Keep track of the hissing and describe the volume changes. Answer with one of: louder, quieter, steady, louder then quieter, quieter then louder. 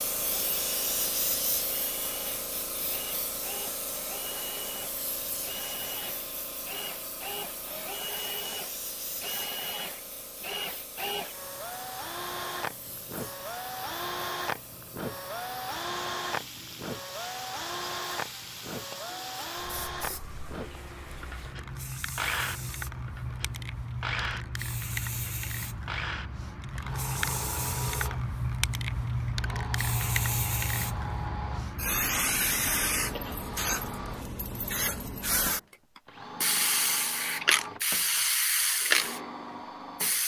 quieter then louder.